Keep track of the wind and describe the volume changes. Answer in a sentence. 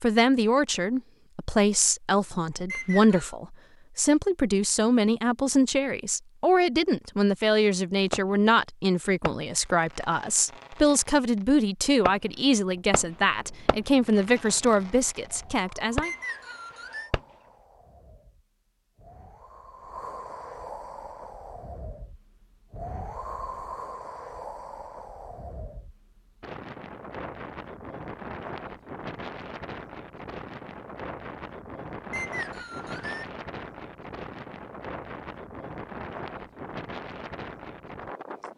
The volume of the wind goes up.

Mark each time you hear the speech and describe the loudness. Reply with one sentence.
The speech can be heard from 0.0 to 16.1 s, at a steady volume.